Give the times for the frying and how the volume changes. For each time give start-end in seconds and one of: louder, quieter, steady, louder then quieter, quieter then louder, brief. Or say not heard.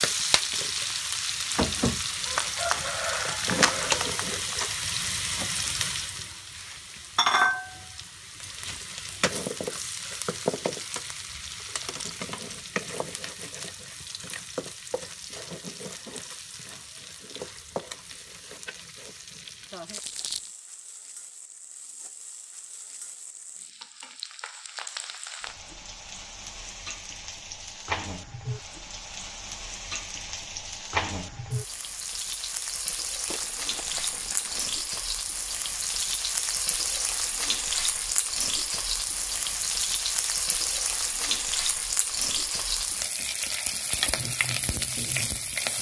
0.0-45.7 quieter then louder.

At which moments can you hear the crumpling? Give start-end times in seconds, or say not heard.
2.3-4.6, 19.9-20.5, 33.2-34.8.